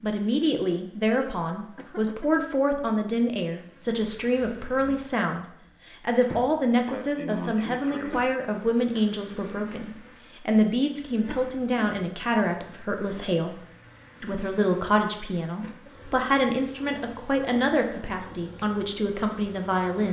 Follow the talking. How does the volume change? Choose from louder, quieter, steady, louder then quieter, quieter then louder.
steady.